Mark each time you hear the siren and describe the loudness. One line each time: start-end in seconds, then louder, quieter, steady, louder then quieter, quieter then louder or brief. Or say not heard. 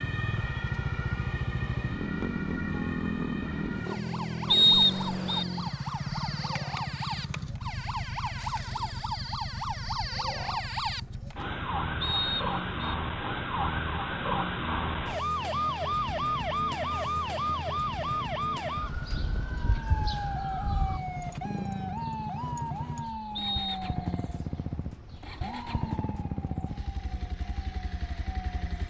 0.0-28.8 louder then quieter.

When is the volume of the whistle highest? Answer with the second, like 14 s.
5 s.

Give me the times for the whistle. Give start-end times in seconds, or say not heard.
4.5-5.5, 12.0-12.9, 23.4-23.9.